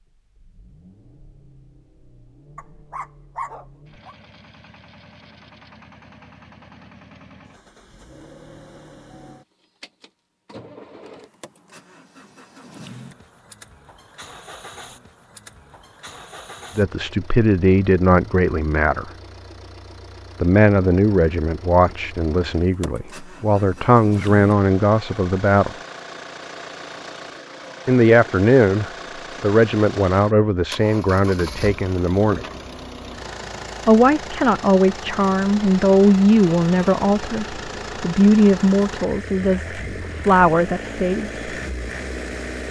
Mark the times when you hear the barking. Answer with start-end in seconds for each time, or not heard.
2.5-4.2.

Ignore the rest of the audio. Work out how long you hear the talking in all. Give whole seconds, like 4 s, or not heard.
20 s.